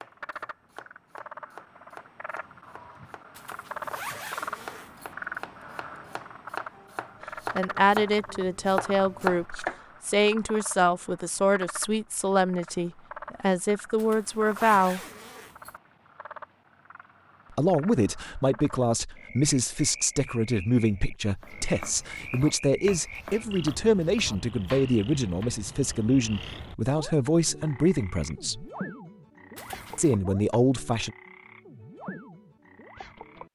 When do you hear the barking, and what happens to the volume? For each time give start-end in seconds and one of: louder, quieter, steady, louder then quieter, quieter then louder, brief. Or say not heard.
not heard.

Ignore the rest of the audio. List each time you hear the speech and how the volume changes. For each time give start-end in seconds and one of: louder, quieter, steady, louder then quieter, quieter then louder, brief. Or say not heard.
7.5-15.0 steady
17.6-28.6 steady
29.9-31.1 brief.